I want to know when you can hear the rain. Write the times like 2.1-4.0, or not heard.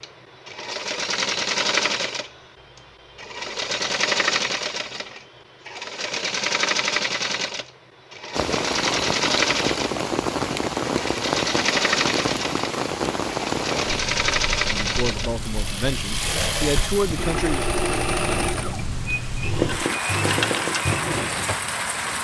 8.3-22.2.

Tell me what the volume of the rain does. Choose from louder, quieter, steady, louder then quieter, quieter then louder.
quieter then louder.